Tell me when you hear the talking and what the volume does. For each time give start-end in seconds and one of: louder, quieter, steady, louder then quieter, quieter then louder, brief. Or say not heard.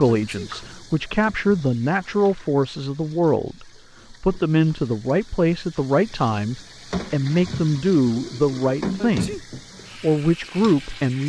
0.0-11.2 steady.